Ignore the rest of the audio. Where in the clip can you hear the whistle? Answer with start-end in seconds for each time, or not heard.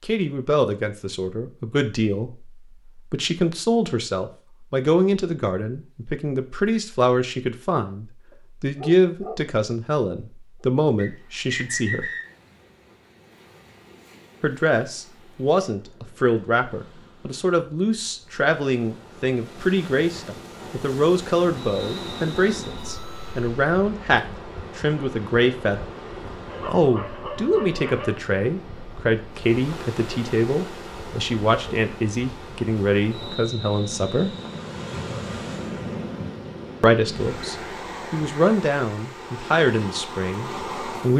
10.9-12.2, 21.6-22.9, 33.1-34.6.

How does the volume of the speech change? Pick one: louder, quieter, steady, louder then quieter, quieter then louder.
steady.